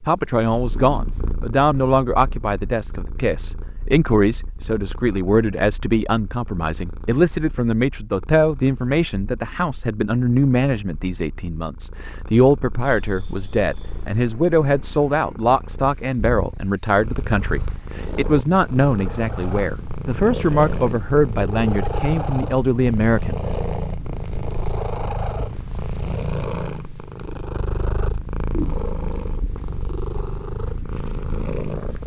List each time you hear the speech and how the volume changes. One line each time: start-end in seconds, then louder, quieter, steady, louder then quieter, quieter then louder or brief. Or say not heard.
0.0-23.4 steady.